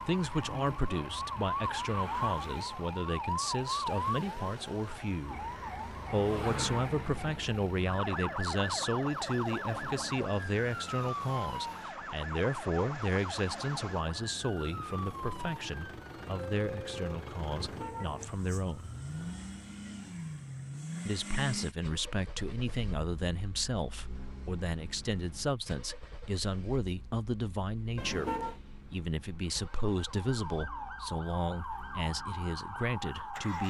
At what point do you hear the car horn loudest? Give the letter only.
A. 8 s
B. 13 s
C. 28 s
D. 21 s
C.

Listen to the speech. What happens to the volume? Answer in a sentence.
The loudness of the speech stays about the same.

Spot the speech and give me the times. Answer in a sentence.
The speech can be heard from 0.0 to 18.9 s and from 21.1 to 33.6 s.